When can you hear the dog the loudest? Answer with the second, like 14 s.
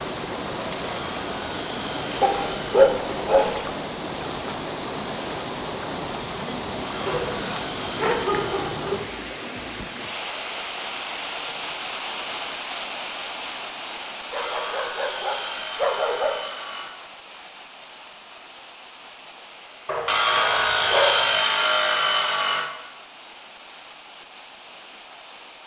3 s.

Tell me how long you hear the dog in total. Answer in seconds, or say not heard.
7 s.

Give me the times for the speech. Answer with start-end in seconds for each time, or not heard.
not heard.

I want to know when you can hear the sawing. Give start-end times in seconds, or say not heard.
0.8-3.0, 6.8-8.8, 14.3-17.0, 20.1-22.7.